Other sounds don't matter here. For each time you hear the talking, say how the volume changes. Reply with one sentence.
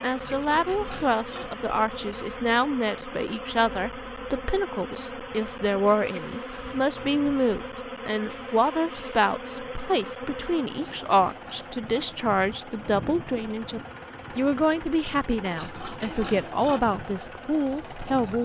The talking can be heard from 0.0 to 18.4 s, at a steady volume.